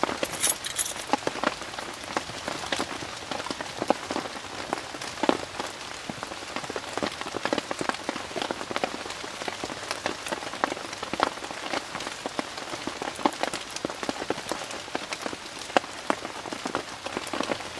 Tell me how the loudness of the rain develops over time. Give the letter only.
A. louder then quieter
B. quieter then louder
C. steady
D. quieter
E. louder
C.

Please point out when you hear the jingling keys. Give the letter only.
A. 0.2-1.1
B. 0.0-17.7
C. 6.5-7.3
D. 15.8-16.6
A.